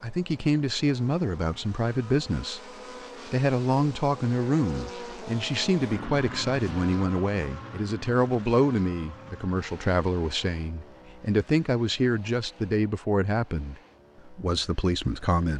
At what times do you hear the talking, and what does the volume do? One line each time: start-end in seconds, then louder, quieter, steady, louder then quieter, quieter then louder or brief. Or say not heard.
0.0-2.6 brief
3.2-15.5 steady.